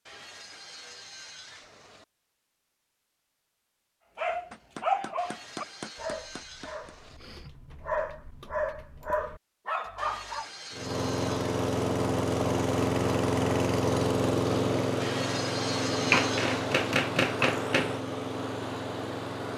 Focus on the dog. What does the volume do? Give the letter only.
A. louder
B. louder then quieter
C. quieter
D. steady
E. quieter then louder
E.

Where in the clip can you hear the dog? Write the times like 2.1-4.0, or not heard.
4.2-10.4.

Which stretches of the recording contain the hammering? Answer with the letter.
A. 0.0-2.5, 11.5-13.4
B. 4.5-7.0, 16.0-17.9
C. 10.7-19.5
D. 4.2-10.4
B.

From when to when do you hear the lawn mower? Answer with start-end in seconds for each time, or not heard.
10.7-19.5.